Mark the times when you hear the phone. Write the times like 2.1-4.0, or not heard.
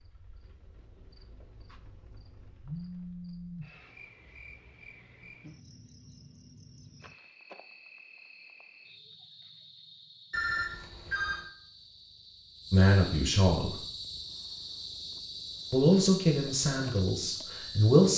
2.6-3.7, 10.3-11.4.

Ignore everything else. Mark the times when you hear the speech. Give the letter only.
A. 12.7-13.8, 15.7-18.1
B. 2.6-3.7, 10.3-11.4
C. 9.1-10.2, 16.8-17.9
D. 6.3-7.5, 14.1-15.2
A.